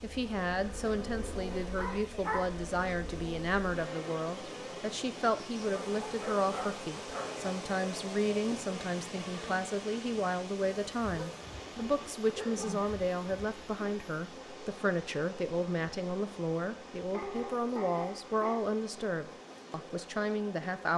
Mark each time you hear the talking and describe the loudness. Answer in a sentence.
You can hear the talking from 0.0 to 20.9 s, at a steady volume.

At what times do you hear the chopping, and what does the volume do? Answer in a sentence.
The chopping can't be heard in this clip.